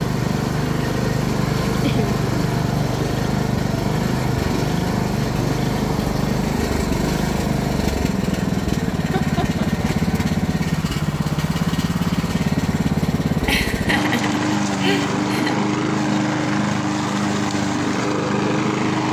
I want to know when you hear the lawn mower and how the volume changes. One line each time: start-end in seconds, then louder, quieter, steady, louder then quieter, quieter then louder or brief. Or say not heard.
0.0-19.0 steady.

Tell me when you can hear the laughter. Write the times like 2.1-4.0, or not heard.
1.8-2.2, 8.9-9.7, 13.4-15.6.